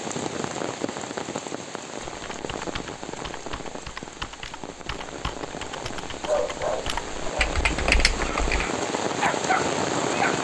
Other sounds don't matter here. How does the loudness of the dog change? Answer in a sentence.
The volume of the dog goes down, then up.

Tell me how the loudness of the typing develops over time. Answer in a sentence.
The volume of the typing goes up.